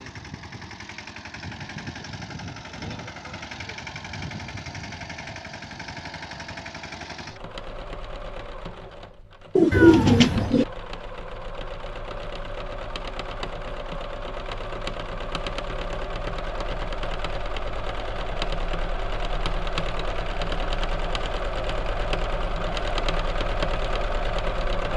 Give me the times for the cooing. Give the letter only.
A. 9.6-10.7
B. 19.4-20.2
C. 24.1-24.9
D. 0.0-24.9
A.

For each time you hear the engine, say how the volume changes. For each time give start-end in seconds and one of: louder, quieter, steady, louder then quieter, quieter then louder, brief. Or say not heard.
0.0-24.9 louder.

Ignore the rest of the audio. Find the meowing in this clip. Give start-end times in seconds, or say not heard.
9.7-10.6.